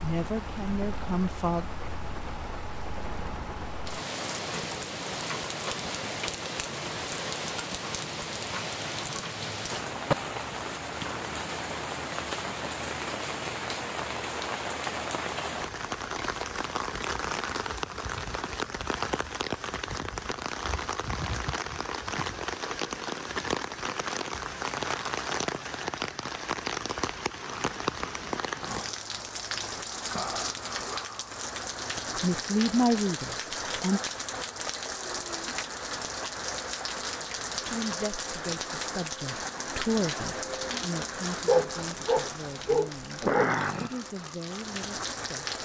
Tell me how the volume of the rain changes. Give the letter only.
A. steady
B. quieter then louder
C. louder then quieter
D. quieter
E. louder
A.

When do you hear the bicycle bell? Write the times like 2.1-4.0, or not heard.
not heard.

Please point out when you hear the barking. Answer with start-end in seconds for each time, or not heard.
41.5-43.5.